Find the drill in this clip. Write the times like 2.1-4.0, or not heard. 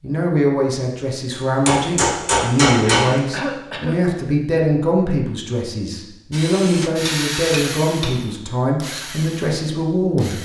6.3-10.3.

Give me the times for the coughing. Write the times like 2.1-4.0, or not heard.
2.9-4.0.